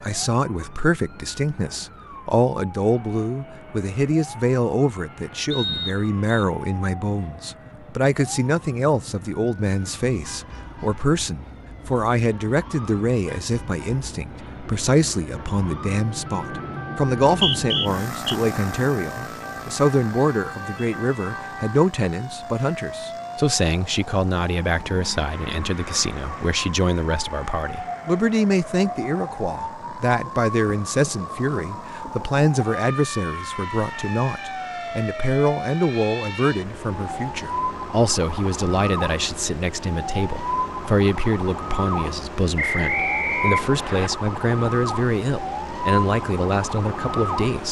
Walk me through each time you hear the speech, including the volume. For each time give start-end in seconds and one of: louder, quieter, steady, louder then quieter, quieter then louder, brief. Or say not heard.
0.0-47.6 steady.